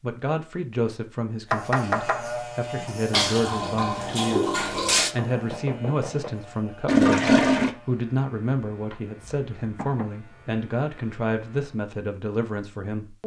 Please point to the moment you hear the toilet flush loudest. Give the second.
7 s.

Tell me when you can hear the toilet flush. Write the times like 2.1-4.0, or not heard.
3.1-5.2, 6.8-7.8.